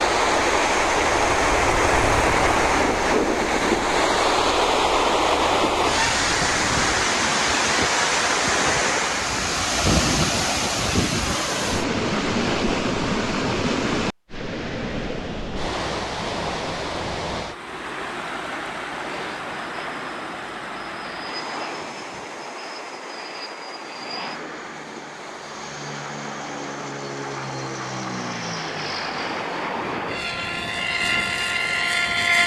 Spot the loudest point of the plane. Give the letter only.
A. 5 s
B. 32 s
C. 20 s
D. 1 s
B.